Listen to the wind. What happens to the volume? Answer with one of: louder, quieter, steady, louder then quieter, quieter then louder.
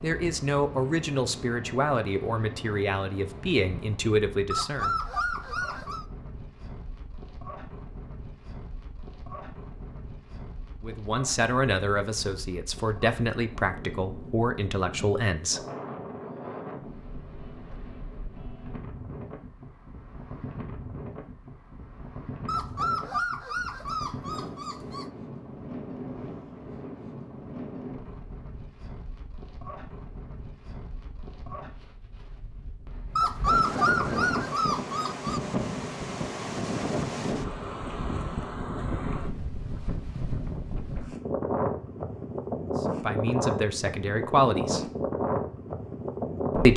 louder.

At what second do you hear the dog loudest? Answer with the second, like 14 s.
34 s.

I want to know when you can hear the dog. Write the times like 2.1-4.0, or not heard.
4.5-6.0, 22.4-25.1, 33.1-35.4.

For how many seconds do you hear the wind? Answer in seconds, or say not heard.
47 s.